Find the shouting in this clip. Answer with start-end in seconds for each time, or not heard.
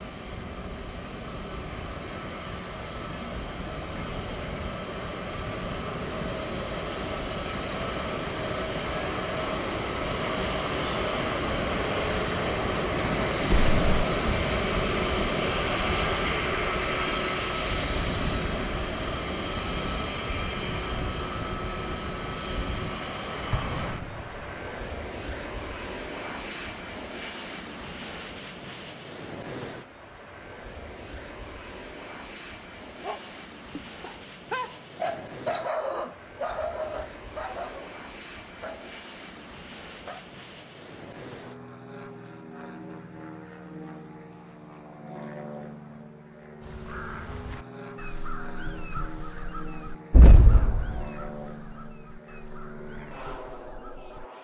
not heard.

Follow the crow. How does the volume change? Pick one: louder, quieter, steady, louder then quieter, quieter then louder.
quieter.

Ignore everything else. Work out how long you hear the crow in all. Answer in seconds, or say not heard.
8 s.